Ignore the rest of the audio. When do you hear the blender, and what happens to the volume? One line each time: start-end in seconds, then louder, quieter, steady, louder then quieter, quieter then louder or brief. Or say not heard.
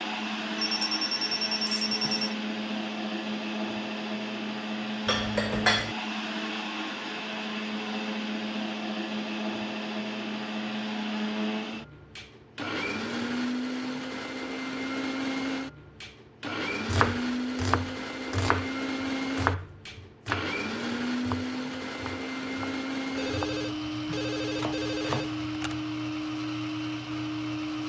0.0-27.8 steady.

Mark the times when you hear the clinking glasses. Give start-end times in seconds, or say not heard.
5.0-6.0.